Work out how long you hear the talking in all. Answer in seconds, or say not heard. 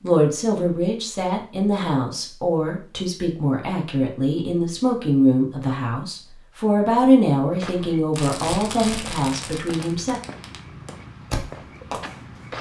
10 s.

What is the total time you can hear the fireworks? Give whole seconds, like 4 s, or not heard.
4 s.